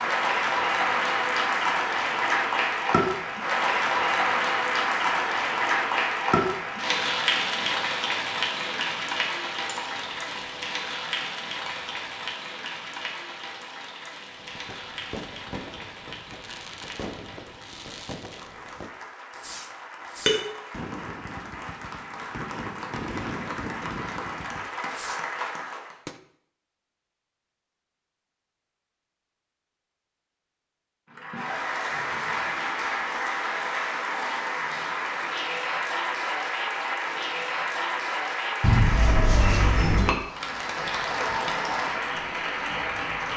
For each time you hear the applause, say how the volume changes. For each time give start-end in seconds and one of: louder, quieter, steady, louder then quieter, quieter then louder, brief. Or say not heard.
0.0-25.9 quieter then louder
31.1-43.3 steady.